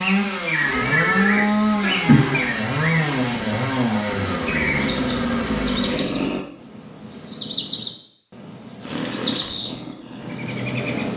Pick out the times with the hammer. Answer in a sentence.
You can't hear the hammer here.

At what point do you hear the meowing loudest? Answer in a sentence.
The volume of the meowing peaks at 2 seconds.